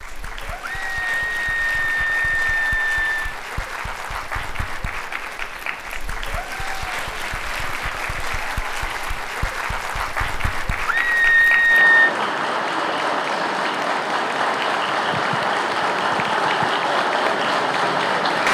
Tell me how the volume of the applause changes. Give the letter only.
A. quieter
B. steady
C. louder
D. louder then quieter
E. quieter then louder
C.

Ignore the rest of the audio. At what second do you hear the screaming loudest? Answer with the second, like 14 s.
12 s.